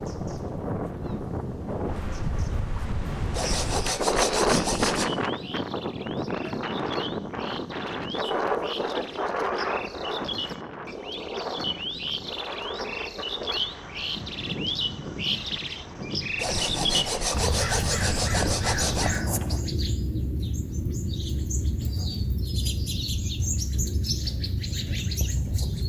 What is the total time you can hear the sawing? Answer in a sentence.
You can hear the sawing for 5 seconds altogether.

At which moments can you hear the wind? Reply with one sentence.
You can hear the wind from 0.0 to 19.6 s.